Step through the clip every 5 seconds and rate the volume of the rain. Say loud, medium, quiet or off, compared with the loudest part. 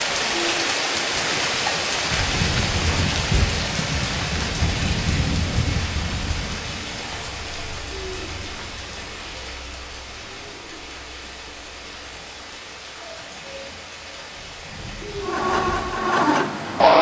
loud, medium, quiet, medium.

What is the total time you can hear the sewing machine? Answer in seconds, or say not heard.
2 s.